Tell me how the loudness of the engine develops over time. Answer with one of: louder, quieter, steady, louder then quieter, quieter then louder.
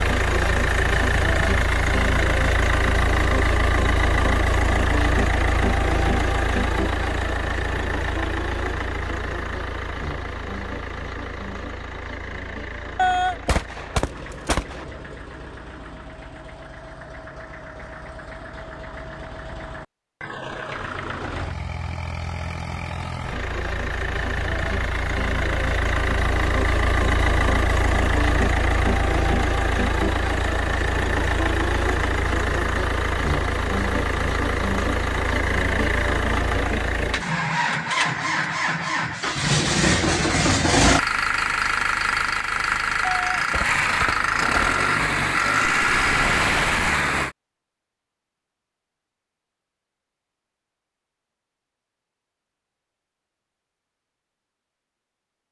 quieter then louder.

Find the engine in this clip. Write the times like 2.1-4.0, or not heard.
0.0-47.4.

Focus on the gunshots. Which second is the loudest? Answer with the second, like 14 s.
13 s.